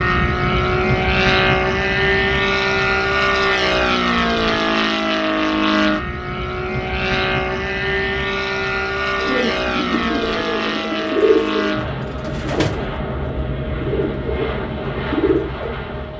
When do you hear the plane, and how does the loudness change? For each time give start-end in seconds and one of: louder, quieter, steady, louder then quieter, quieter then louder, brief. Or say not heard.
0.0-16.1 quieter.